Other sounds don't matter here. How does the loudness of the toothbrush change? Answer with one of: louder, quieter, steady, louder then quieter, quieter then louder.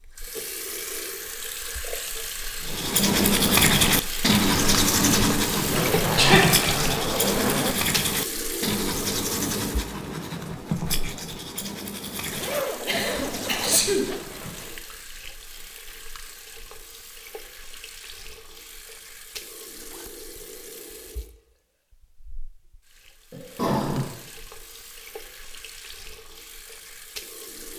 quieter.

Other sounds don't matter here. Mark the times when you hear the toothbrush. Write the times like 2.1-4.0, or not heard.
2.6-14.6.